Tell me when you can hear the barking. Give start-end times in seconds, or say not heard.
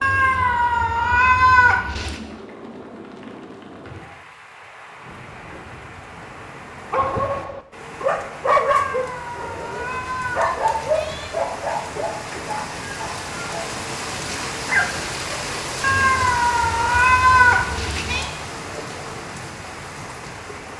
6.9-15.1.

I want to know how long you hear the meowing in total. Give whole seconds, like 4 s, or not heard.
7 s.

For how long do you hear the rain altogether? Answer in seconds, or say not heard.
21 s.